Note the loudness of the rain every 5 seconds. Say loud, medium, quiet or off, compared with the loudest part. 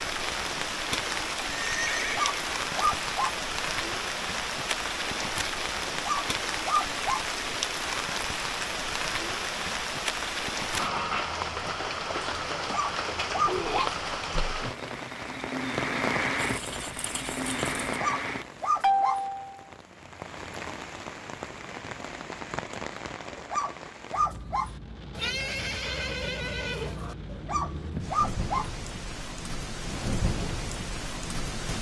loud, loud, loud, loud, medium, medium, loud.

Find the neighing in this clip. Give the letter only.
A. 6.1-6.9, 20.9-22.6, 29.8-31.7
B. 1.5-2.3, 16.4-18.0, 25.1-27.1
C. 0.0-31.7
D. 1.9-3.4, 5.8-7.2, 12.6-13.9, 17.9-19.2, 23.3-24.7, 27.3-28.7
B.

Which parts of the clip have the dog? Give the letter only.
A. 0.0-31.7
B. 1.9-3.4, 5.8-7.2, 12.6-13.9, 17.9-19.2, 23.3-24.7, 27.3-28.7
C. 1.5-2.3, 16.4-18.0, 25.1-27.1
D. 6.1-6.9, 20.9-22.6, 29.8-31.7
B.